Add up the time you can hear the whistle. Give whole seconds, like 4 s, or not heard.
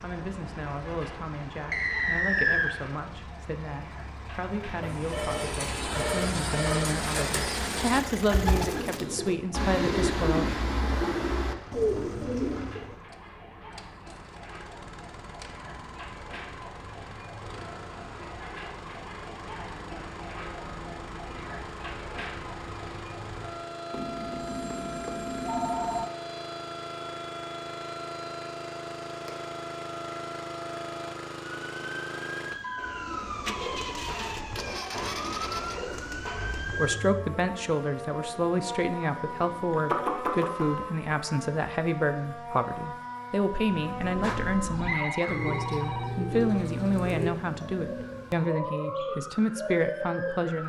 2 s.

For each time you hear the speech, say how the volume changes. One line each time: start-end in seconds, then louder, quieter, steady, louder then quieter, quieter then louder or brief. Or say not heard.
0.0-10.5 louder
36.8-50.6 steady.